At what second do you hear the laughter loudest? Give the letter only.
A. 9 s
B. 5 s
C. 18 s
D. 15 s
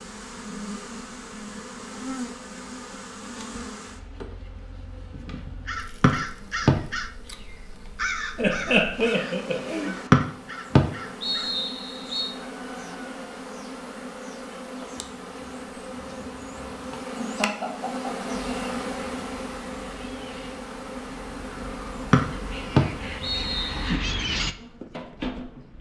A.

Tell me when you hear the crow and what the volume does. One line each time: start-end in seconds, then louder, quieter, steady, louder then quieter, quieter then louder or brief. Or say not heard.
5.7-11.6 quieter
18.3-24.6 louder.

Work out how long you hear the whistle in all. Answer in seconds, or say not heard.
5 s.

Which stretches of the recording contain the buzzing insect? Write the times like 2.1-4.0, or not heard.
0.0-25.7.